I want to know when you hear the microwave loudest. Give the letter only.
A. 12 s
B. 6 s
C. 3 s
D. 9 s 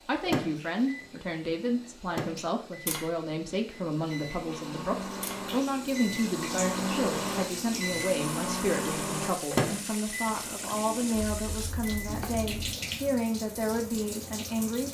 D.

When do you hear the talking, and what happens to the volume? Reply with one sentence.
The talking can be heard from 0.1 to 14.9 s, at a steady volume.